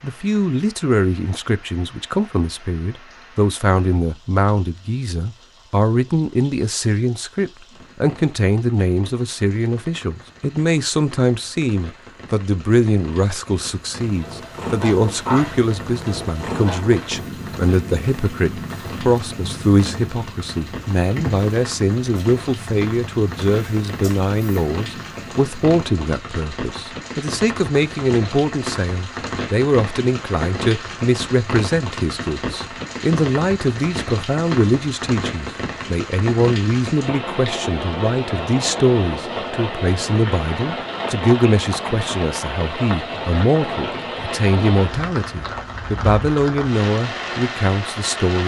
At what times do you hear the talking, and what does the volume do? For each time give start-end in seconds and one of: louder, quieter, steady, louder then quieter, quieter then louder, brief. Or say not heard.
0.0-48.4 steady.